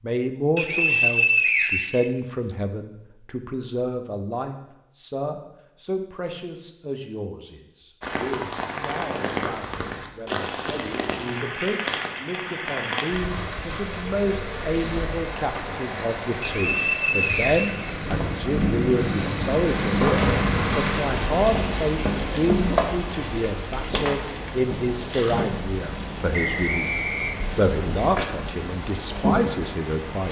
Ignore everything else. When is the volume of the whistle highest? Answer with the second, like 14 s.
1 s.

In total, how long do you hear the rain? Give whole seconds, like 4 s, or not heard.
22 s.